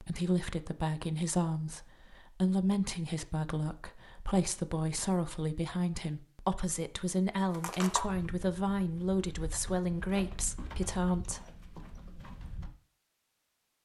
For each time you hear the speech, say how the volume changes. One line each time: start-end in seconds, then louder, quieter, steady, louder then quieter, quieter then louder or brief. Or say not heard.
0.0-11.4 steady.